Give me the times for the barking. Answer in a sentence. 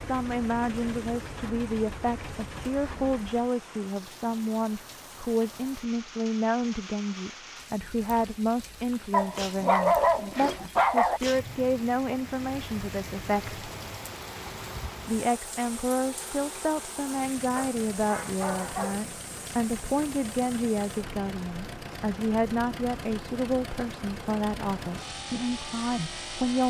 The barking can be heard from 9.1 to 11.2 s and from 17.6 to 19.1 s.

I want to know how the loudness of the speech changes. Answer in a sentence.
The loudness of the speech stays about the same.